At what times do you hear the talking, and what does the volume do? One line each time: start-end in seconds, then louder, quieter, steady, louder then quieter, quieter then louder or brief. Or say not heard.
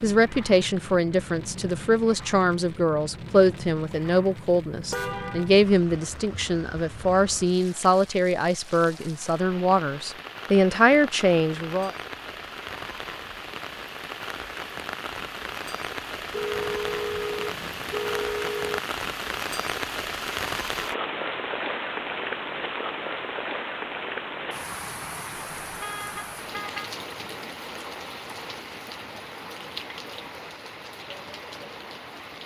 0.0-11.9 steady.